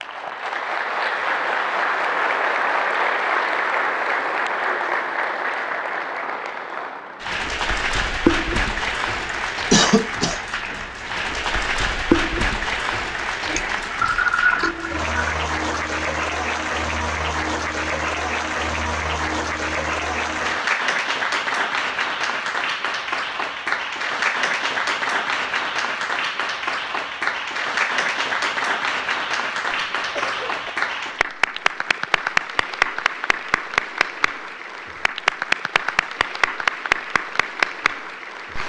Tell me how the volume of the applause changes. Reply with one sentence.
The loudness of the applause stays about the same.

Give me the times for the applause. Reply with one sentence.
The applause can be heard from 0.0 to 38.6 s.